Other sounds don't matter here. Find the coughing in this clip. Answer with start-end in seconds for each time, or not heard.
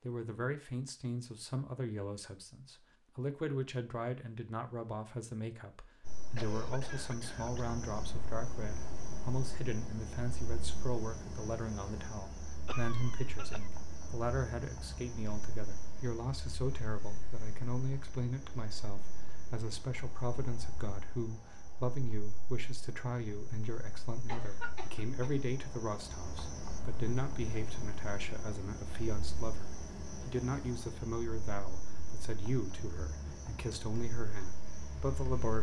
6.3-7.8, 12.7-13.7, 24.2-25.4.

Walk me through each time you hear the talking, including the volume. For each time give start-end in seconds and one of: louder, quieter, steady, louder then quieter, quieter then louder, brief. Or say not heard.
0.0-35.5 steady.